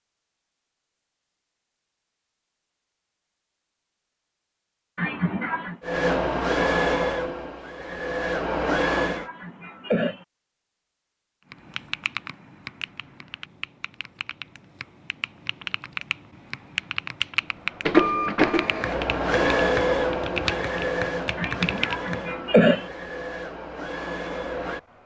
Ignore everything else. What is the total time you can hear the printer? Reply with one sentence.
You can hear the printer for 11 seconds altogether.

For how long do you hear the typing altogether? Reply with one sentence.
You can hear the typing for 11 seconds altogether.